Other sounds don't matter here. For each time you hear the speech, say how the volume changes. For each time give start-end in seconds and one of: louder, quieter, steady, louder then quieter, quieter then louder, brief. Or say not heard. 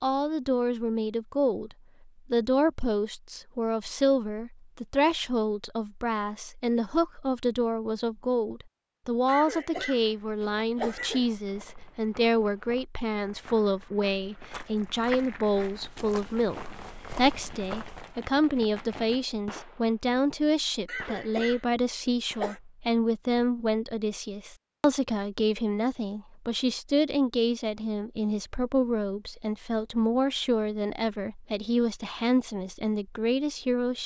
0.0-34.0 steady.